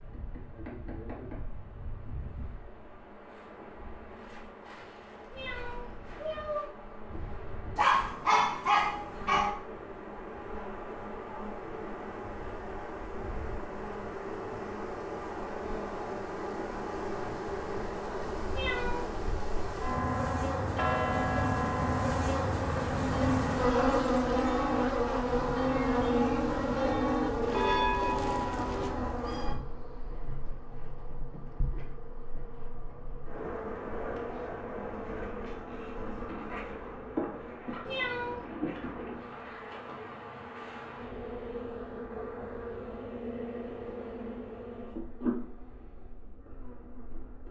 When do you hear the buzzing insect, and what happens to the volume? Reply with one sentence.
The buzzing insect can be heard from 0.0 to 47.4 s, getting louder then quieter.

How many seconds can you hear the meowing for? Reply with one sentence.
The meowing can be heard for 3 seconds in total.